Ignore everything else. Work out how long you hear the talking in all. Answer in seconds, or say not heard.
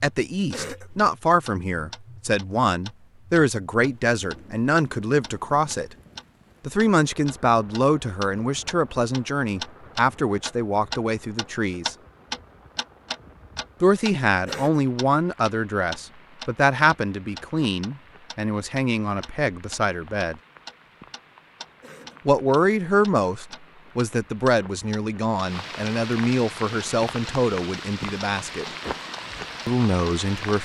25 s.